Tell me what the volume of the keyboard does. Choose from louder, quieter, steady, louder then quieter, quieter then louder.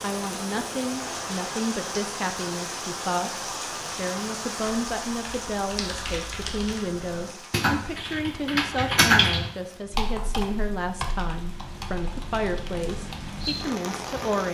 louder then quieter.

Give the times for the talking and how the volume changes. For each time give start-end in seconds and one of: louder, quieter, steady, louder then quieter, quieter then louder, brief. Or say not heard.
0.0-14.4 steady.